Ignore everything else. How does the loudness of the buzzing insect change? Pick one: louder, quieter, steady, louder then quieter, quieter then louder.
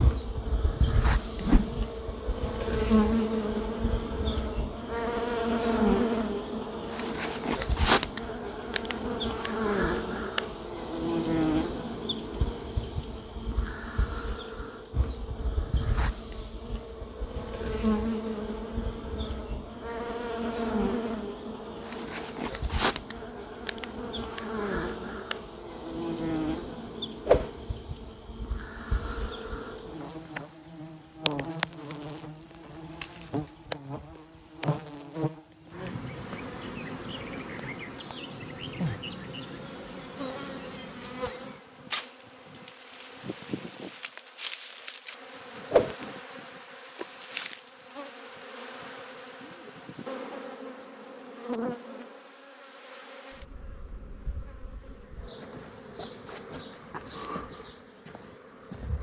quieter.